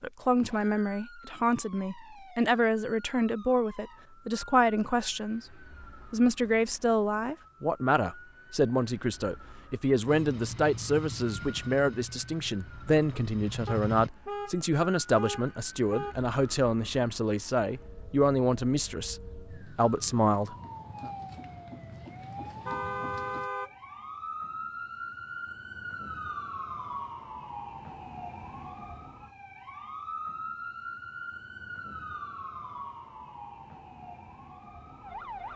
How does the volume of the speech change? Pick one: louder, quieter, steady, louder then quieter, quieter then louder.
steady.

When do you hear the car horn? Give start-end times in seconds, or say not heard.
13.7-16.1, 22.6-23.7.